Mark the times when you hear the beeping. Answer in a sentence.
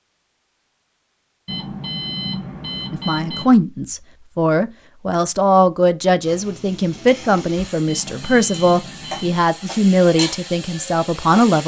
You can hear the beeping from 1.4 to 3.5 s and from 7.8 to 9.4 s.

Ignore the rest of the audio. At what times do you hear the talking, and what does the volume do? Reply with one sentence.
You can hear the talking from 2.9 to 11.6 s, at a steady volume.